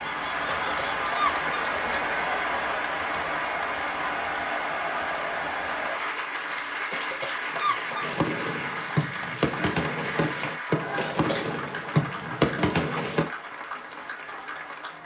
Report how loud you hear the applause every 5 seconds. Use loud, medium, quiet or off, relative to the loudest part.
loud, loud, medium.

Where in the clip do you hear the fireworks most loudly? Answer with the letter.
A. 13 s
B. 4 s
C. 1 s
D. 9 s
A.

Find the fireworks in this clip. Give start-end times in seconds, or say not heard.
8.0-13.2.